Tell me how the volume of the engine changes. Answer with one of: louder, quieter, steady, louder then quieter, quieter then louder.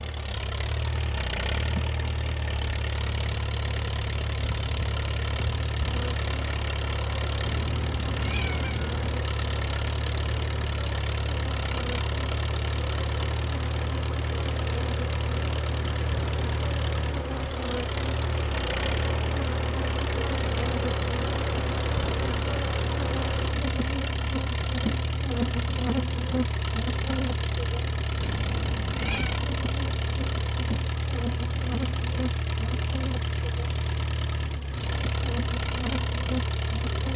steady.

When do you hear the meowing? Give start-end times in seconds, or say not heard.
7.4-9.2, 28.2-29.4.